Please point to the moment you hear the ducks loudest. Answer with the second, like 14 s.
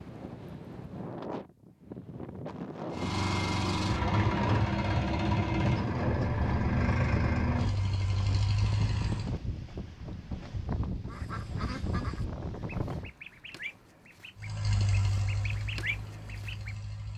16 s.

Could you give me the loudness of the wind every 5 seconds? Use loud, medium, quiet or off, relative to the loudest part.
loud, loud, loud, off.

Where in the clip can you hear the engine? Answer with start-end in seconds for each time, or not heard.
2.9-9.3, 14.3-17.1.